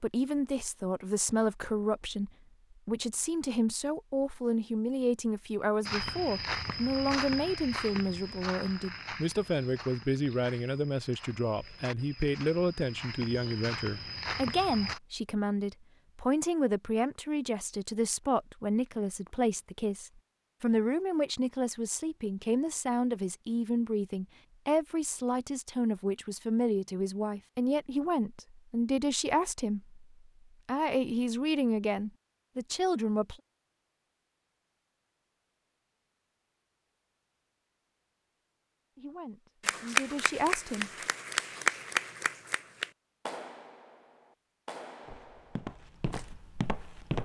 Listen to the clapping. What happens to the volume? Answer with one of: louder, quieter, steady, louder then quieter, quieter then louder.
louder then quieter.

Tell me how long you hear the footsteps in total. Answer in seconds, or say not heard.
11 s.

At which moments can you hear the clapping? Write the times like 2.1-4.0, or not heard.
39.6-46.3.